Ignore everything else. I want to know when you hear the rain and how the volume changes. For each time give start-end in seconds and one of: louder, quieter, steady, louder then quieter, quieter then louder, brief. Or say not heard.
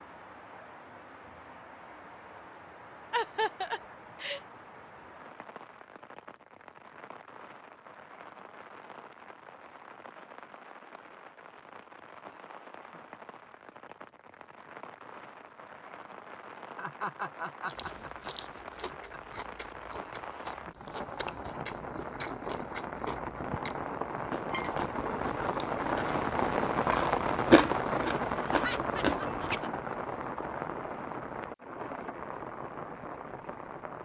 0.0-34.0 louder.